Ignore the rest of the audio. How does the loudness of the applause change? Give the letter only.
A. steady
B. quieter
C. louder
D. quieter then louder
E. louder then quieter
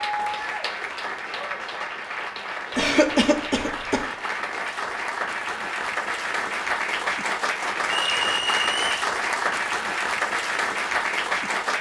C.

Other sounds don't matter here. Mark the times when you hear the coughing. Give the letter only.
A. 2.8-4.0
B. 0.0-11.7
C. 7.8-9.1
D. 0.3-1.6
A.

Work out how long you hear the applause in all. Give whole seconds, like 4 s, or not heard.
12 s.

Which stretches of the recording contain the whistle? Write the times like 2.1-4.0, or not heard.
7.8-9.1.